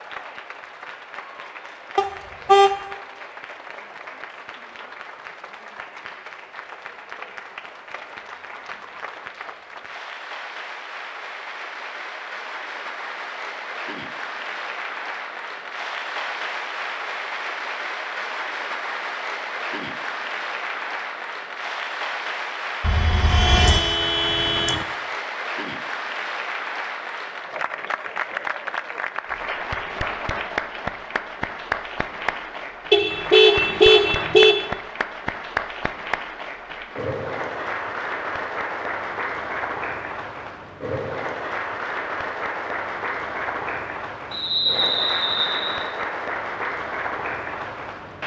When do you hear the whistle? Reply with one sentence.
The whistle can be heard from 44.3 to 45.8 s.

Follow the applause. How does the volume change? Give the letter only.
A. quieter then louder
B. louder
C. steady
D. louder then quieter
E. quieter
B.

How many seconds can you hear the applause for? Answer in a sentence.
You can hear the applause for 48 seconds altogether.